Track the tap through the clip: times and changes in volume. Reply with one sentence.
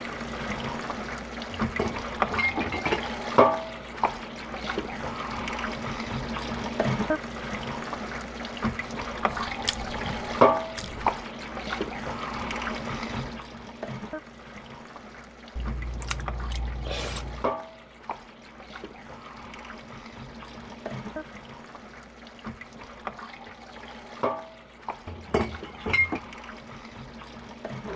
The tap can be heard from 0.0 to 27.9 s, getting quieter.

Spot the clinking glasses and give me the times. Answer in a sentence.
You can hear the clinking glasses from 1.6 to 3.1 s and from 25.1 to 26.2 s.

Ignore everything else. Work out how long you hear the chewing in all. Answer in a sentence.
The chewing can be heard for 4 seconds in total.